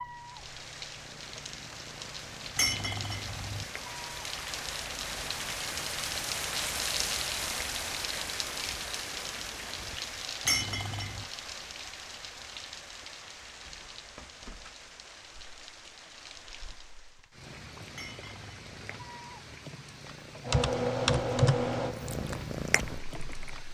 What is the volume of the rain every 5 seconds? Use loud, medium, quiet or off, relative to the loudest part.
medium, loud, medium, quiet, quiet.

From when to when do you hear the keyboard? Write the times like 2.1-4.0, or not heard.
20.4-23.6.